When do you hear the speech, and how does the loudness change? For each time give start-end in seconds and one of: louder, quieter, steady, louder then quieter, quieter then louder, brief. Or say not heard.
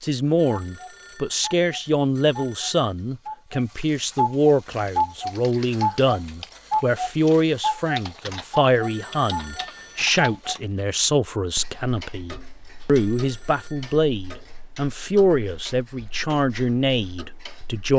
0.0-17.9 steady.